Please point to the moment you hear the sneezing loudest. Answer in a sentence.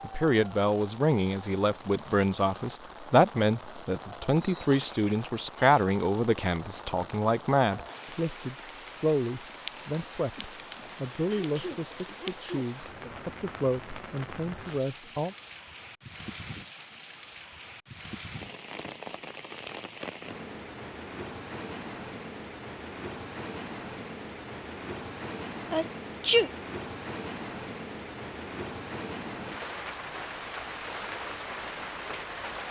The loudest moment of the sneezing is at 26 seconds.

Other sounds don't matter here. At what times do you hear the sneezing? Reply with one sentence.
The sneezing can be heard from 4.5 to 5.9 s, from 11.2 to 12.7 s and from 25.7 to 26.5 s.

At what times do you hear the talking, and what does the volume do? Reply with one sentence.
The talking can be heard from 0.0 to 15.3 s, getting quieter.